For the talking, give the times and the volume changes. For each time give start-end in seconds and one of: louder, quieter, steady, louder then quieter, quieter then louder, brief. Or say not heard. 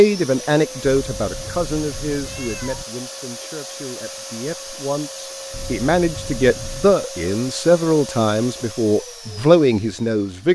0.0-10.4 quieter then louder.